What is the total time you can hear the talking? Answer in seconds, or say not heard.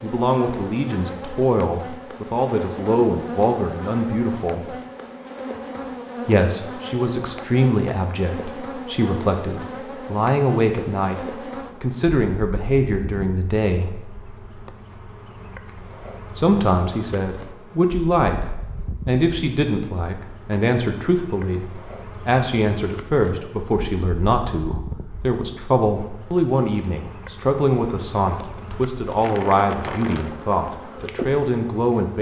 28 s.